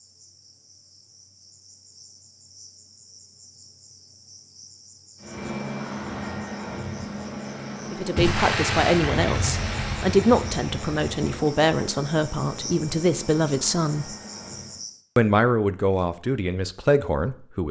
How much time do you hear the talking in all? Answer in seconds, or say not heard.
9 s.